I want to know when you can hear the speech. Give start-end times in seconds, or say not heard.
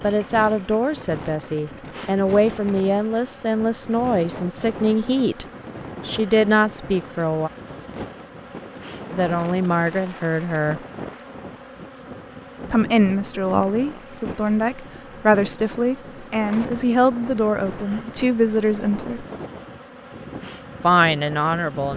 0.0-5.5, 6.0-7.5, 9.1-10.8, 12.7-19.2, 20.8-21.9.